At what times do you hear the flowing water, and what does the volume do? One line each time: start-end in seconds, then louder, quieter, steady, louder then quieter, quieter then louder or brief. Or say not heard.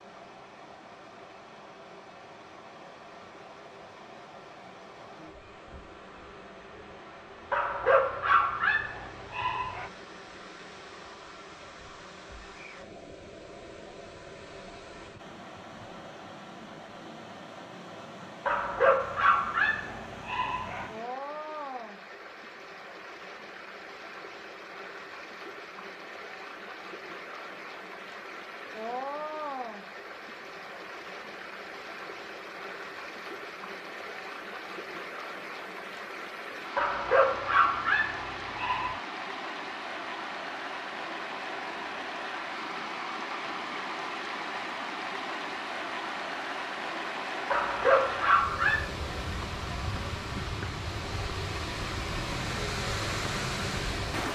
0.0-54.3 louder.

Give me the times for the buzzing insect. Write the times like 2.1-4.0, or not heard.
not heard.